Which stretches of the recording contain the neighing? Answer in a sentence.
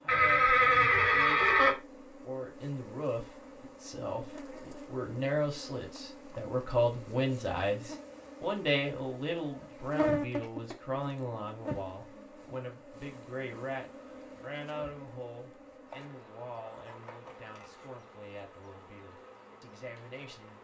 The neighing can be heard from 0.1 to 1.8 s.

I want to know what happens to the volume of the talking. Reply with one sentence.
The volume of the talking goes up, then down.